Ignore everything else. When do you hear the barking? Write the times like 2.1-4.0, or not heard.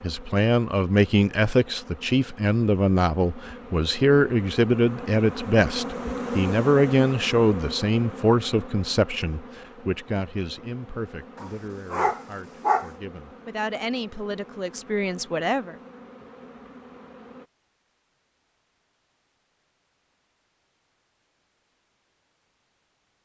11.3-12.9.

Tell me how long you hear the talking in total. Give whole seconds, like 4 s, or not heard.
16 s.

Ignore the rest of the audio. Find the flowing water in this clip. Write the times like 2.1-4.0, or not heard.
not heard.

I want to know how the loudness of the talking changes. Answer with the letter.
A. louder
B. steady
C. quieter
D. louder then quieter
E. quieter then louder
C.